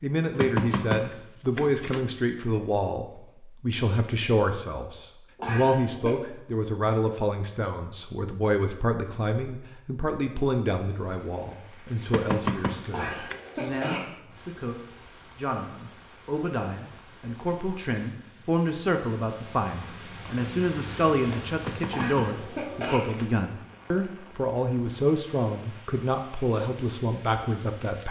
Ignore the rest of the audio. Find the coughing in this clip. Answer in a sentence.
You can hear the coughing from 5.3 to 6.2 s, from 12.9 to 14.0 s and from 21.9 to 23.0 s.